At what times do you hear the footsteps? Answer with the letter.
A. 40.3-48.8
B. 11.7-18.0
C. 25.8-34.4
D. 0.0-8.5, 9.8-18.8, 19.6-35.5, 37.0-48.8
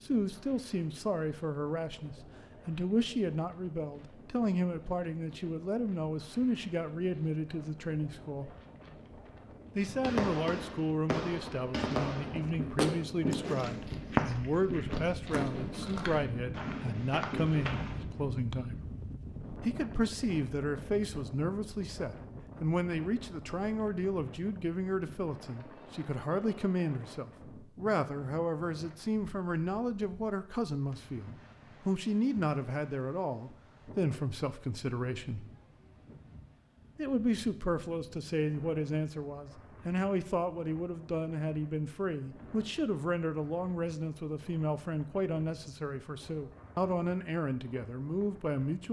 B.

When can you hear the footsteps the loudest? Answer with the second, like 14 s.
14 s.